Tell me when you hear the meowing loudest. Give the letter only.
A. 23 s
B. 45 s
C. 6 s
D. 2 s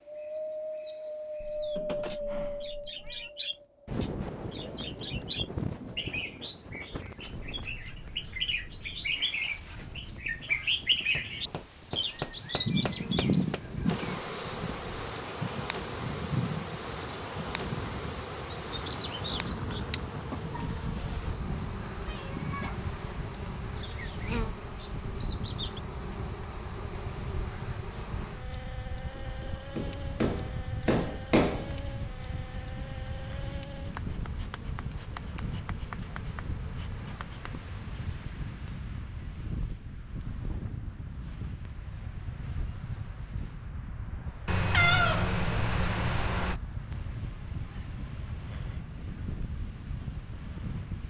B.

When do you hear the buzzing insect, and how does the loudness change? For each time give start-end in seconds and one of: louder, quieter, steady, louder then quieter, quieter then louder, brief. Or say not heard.
12.8-38.2 quieter.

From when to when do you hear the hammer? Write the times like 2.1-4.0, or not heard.
11.2-13.6, 29.1-31.8.